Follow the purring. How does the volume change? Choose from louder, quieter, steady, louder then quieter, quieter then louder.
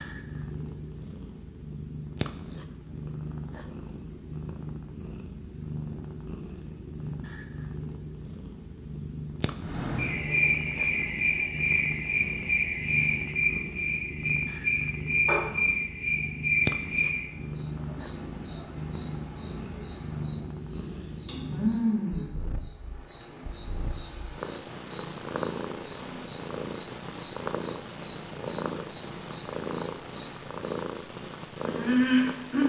steady.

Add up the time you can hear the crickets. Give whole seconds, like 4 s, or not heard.
23 s.